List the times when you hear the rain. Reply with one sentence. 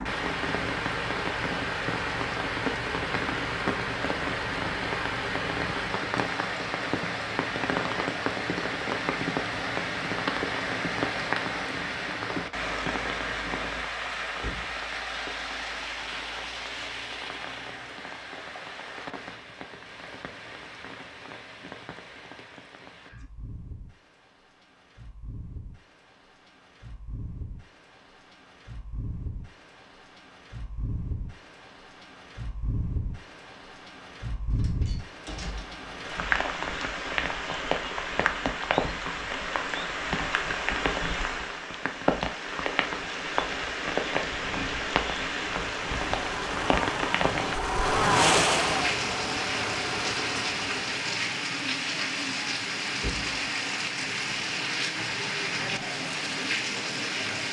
You can hear the rain from 0.0 to 57.4 s.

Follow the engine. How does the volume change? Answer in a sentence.
The loudness of the engine goes up, then down.